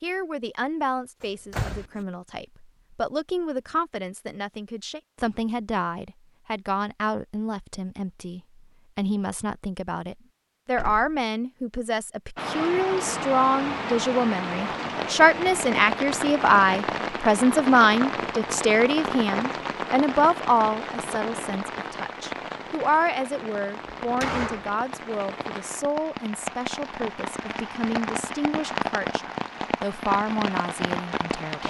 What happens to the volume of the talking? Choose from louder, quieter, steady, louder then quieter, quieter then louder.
louder then quieter.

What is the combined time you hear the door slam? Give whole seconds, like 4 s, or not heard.
2 s.